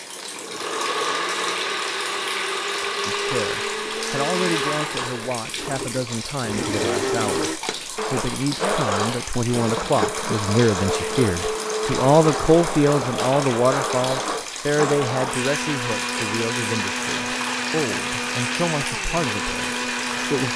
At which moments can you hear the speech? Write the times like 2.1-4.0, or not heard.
3.0-20.5.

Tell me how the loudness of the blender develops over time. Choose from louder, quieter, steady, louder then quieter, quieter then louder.
steady.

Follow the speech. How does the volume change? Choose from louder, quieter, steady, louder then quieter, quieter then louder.
louder then quieter.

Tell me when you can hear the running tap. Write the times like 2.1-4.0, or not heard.
0.0-20.5.